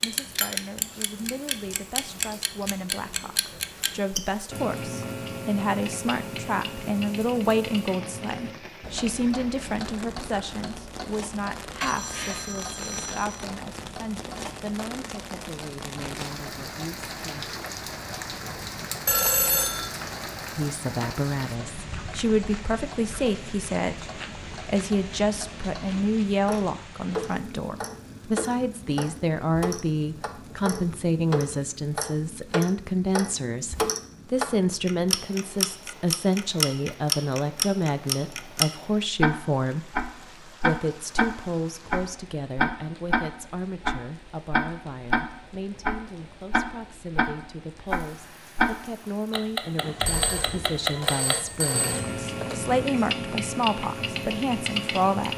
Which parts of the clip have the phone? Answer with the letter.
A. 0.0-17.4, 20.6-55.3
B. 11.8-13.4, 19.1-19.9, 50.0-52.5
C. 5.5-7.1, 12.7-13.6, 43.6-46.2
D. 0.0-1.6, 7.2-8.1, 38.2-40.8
B.